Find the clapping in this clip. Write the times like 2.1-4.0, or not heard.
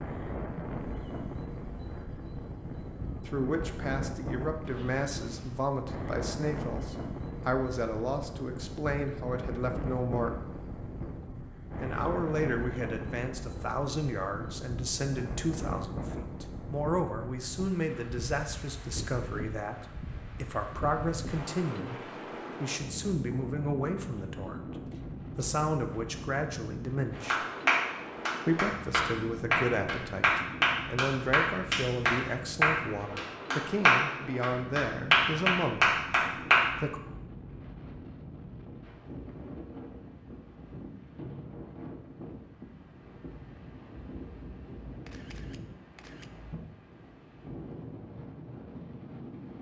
27.3-36.7.